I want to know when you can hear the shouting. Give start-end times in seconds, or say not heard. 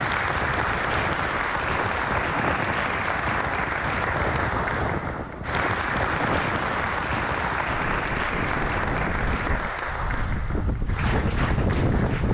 not heard.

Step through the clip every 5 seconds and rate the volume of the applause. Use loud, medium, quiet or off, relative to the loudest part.
loud, loud, medium.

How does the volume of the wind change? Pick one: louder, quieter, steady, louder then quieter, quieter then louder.
steady.